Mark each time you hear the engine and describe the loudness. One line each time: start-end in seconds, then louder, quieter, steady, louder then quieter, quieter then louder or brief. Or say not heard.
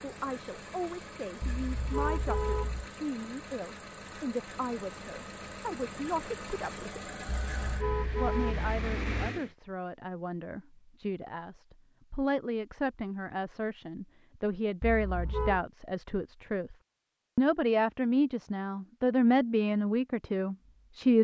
0.0-9.6 louder.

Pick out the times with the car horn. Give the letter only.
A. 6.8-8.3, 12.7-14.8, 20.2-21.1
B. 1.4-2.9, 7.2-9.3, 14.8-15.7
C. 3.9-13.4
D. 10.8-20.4
B.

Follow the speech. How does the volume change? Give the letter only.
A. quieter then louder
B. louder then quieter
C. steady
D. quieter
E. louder
E.